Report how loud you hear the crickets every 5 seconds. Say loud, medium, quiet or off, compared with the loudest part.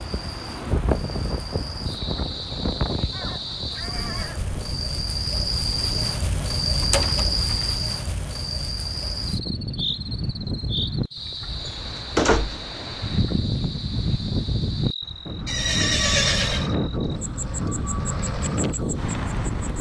medium, loud, medium, medium.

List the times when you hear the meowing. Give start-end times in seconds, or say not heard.
not heard.